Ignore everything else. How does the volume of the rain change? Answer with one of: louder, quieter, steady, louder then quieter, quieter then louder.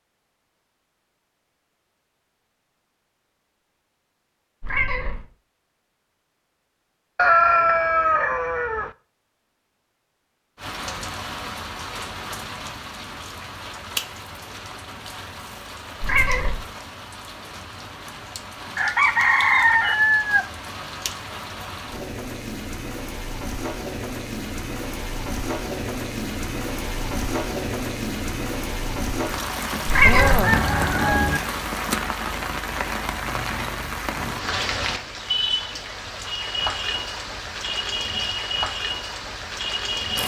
louder.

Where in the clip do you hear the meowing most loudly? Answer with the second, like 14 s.
30 s.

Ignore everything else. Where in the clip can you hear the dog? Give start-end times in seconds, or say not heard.
not heard.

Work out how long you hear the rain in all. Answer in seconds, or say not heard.
30 s.